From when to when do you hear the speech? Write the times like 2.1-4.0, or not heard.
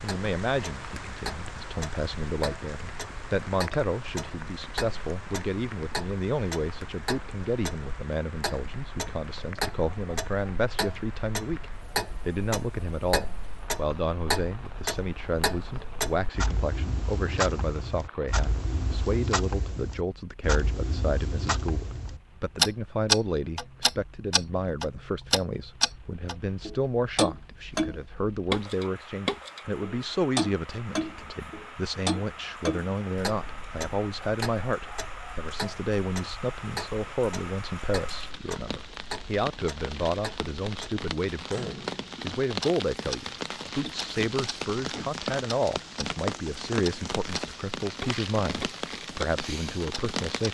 0.0-50.4.